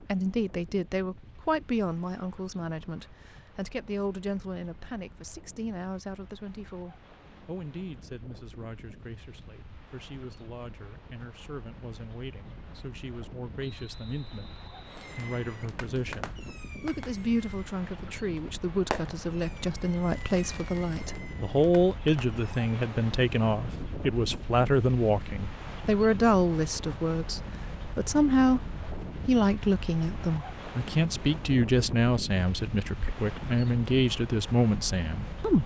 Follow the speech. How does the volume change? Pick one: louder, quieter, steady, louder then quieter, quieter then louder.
quieter then louder.